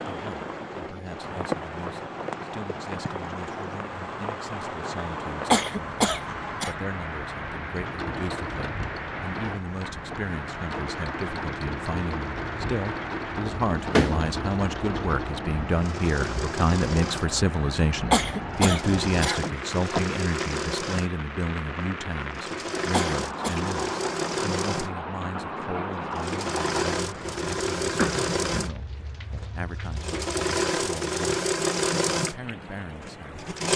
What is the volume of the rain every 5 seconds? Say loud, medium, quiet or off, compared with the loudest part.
loud, loud, loud, loud, loud, loud, medium.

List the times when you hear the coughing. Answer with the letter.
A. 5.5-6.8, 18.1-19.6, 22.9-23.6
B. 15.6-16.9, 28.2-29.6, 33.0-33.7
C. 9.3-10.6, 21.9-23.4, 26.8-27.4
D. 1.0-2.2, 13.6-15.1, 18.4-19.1
A.